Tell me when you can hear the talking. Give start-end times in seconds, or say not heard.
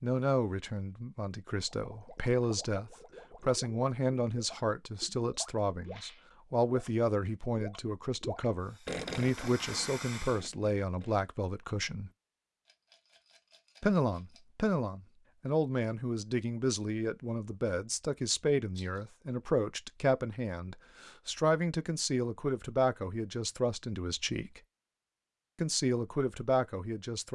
0.0-12.1, 13.8-24.6, 25.6-27.3.